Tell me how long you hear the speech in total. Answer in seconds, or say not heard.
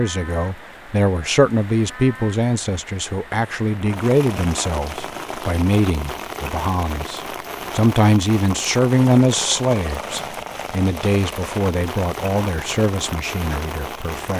14 s.